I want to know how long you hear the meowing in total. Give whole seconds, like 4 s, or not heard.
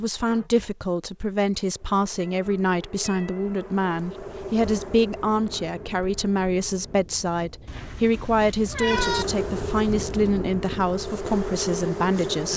4 s.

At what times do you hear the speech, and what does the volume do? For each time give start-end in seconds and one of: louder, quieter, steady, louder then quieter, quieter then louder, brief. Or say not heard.
0.0-12.5 steady.